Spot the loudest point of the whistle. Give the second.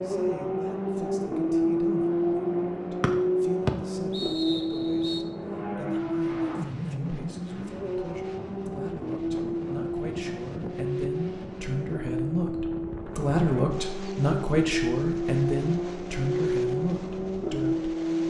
4 s.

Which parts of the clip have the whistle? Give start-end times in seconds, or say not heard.
3.0-5.2.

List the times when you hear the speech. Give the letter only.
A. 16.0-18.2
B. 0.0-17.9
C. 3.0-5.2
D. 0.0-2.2
B.